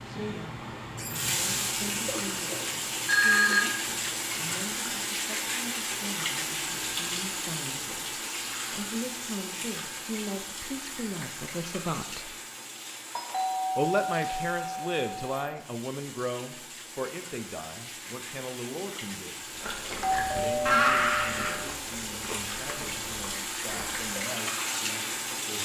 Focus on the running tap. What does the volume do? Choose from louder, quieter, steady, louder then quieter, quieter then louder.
quieter then louder.